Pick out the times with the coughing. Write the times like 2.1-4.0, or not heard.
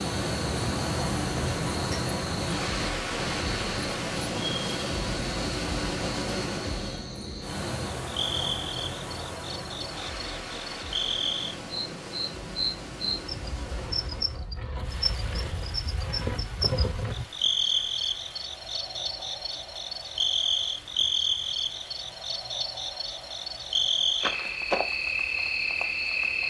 not heard.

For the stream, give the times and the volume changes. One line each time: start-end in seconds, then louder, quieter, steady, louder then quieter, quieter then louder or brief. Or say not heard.
0.0-26.4 quieter.